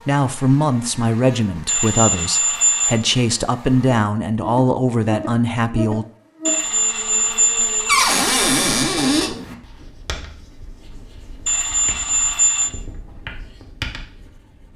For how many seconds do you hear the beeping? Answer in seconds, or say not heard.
4 s.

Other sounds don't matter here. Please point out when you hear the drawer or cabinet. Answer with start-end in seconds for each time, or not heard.
7.8-9.3.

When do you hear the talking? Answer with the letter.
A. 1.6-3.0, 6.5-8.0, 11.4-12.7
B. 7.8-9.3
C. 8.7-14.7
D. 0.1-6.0
D.